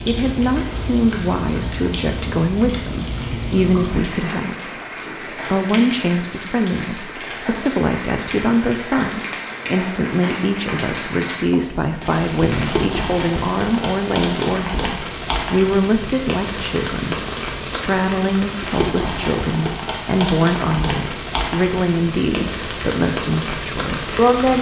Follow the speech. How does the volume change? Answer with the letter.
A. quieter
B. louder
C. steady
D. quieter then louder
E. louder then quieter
C.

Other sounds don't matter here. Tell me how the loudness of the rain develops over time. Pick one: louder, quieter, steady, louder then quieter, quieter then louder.
steady.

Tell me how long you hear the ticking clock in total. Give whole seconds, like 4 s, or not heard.
not heard.